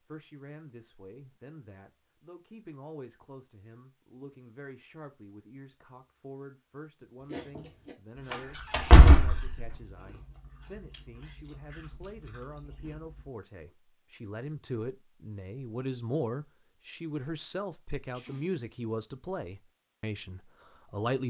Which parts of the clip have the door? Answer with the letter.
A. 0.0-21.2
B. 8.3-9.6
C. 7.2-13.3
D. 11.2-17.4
B.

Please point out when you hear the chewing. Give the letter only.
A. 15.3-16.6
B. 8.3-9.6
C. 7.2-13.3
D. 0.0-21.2
C.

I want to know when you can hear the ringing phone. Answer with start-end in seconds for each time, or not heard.
not heard.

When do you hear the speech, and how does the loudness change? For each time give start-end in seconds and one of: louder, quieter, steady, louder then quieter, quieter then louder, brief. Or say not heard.
0.0-21.2 louder.